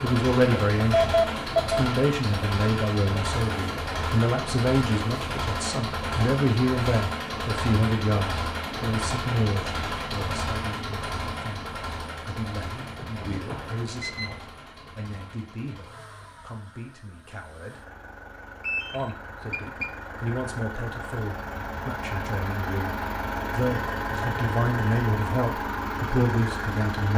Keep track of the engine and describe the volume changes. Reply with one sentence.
The loudness of the engine goes down, then up.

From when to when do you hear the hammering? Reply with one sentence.
The hammering can't be heard in this clip.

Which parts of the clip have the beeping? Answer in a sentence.
You can hear the beeping from 0.5 to 1.8 s, from 12.8 to 14.3 s and from 18.6 to 19.9 s.